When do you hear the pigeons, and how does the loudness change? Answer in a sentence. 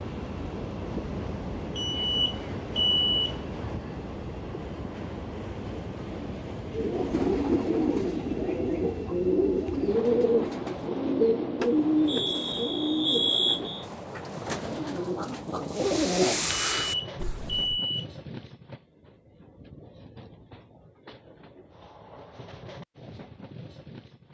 You can hear the pigeons from 6.7 to 17.8 s, getting quieter then louder.